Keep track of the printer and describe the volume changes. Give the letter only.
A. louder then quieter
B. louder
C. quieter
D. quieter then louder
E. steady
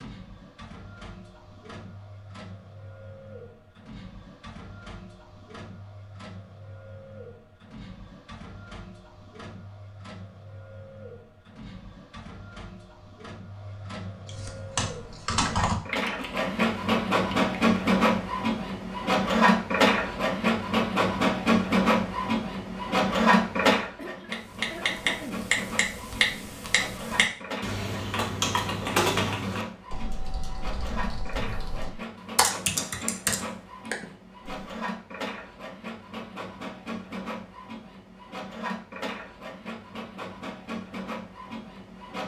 A.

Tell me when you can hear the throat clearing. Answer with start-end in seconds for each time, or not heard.
23.9-25.4.